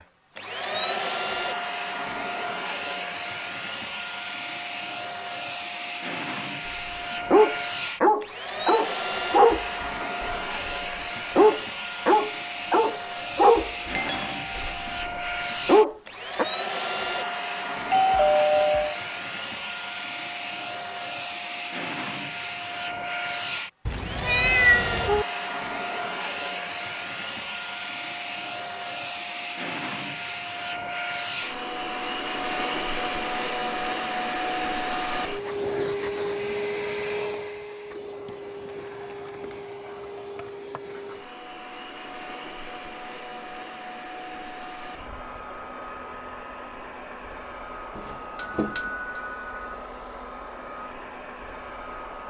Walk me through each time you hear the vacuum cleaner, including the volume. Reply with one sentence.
You can hear the vacuum cleaner from 0.0 to 52.2 s, getting quieter.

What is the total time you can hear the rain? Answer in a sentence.
You can't hear the rain here.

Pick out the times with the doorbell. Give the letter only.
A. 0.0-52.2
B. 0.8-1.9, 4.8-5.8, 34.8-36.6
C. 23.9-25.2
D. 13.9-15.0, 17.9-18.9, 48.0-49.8
D.